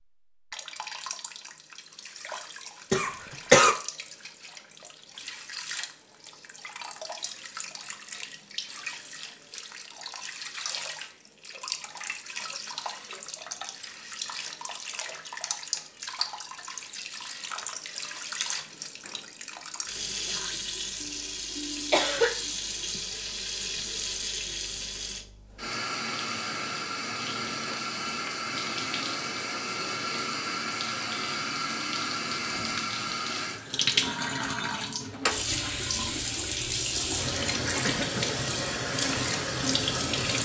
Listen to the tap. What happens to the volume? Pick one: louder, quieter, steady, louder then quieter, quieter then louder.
louder.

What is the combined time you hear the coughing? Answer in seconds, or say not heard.
3 s.